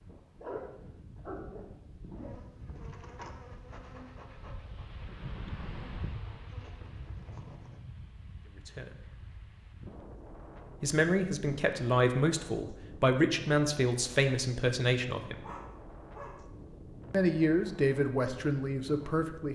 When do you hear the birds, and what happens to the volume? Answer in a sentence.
The birds can't be heard in this clip.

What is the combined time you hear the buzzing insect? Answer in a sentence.
You can hear the buzzing insect for 6 seconds altogether.